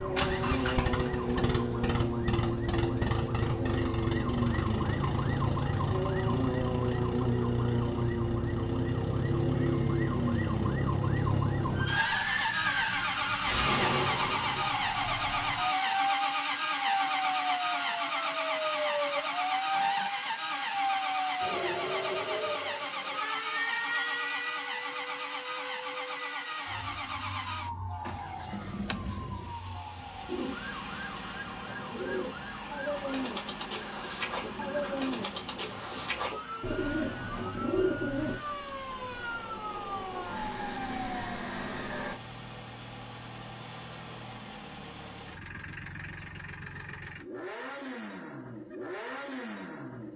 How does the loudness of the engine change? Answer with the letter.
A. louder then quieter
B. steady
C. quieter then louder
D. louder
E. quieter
E.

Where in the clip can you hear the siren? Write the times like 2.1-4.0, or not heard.
0.0-42.1.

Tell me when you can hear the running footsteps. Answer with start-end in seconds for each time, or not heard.
not heard.